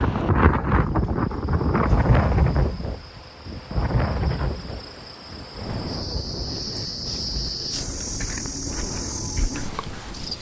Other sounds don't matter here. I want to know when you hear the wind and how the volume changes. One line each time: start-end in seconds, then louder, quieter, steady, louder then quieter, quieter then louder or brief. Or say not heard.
0.0-10.3 quieter.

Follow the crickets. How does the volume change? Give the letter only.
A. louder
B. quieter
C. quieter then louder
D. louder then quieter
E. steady
A.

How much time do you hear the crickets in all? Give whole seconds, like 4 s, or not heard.
10 s.